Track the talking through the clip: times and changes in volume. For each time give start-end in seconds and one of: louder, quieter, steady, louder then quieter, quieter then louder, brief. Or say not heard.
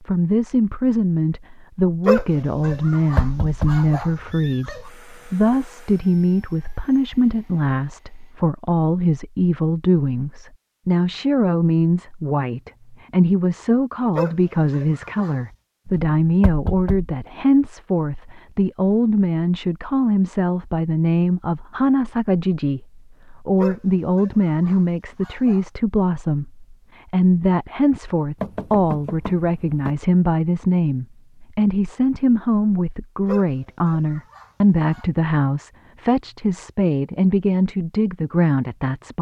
0.0-39.1 steady.